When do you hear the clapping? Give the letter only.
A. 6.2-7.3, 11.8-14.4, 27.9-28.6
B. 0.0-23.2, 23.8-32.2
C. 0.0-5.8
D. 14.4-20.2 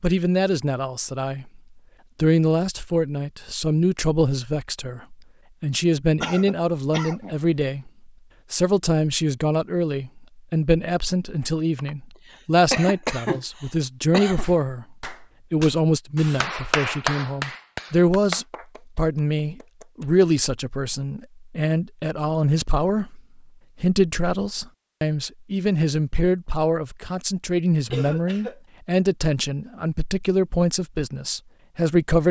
D.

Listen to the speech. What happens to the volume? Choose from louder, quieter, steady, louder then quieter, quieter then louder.
steady.